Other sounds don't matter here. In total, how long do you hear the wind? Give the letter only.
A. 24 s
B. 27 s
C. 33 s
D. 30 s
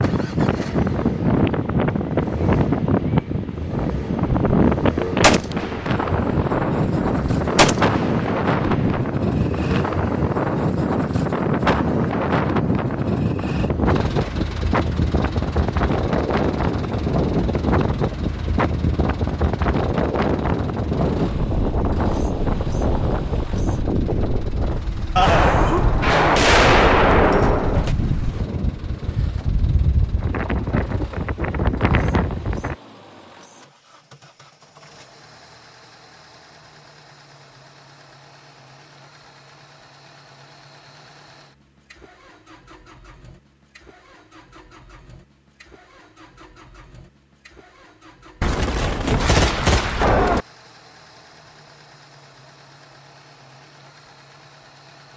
C.